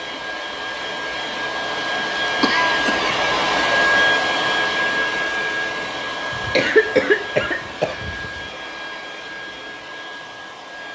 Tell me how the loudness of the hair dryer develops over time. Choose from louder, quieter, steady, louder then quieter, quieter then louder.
louder then quieter.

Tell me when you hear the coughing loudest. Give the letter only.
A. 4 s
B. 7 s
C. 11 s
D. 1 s
B.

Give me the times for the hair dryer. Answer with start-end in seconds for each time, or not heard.
0.0-10.9.